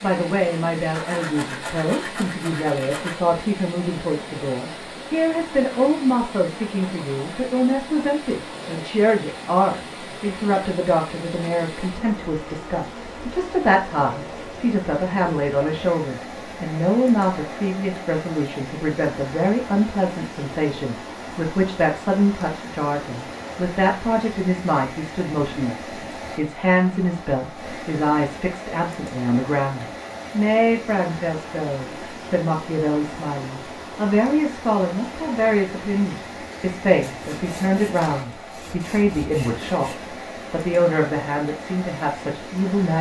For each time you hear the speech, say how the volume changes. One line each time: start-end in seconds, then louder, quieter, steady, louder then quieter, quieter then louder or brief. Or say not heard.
0.0-39.9 steady
40.5-42.9 brief.